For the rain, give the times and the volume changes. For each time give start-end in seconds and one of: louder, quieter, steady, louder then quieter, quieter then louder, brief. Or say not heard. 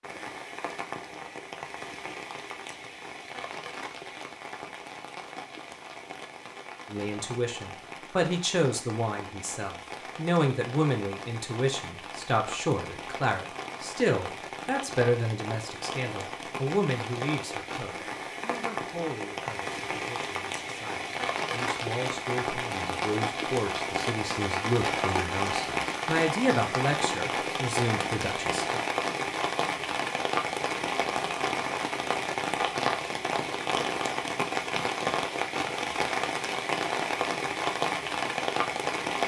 0.0-39.2 louder.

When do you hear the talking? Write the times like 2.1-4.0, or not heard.
6.9-28.8.